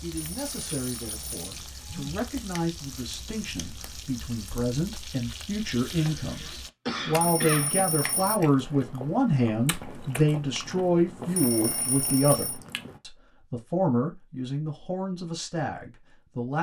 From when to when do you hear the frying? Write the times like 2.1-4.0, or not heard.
0.0-6.7.